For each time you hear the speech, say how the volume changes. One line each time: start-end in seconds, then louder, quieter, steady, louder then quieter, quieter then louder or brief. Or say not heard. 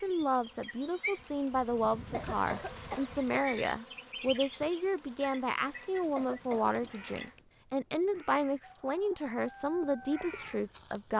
0.0-11.1 steady.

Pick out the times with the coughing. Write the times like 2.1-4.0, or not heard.
2.1-3.0, 6.2-6.8.